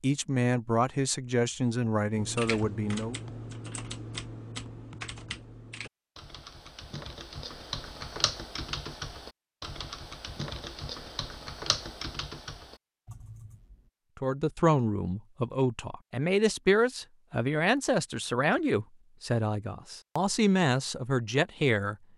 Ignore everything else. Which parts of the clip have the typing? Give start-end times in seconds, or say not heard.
2.1-13.9.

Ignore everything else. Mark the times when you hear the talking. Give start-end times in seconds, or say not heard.
0.0-3.2, 14.2-21.9.